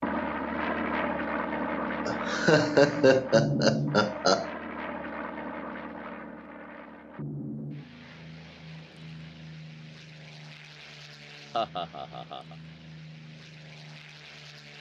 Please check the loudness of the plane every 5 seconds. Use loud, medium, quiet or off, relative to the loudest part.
loud, medium, quiet.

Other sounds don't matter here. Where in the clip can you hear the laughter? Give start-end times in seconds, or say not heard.
2.0-4.5, 11.5-12.6.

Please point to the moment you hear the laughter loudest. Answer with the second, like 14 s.
3 s.